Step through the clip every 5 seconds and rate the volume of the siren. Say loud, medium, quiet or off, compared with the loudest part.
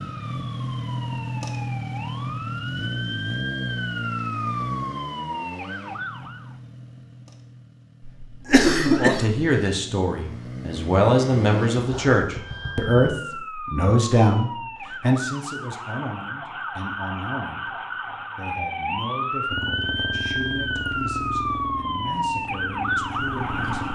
medium, medium, medium, loud, loud.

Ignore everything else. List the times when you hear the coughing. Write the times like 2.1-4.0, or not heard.
8.0-9.4.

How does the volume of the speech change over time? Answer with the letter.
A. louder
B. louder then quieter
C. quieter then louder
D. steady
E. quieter
E.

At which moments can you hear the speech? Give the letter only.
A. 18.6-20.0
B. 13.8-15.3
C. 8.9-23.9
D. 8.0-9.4
C.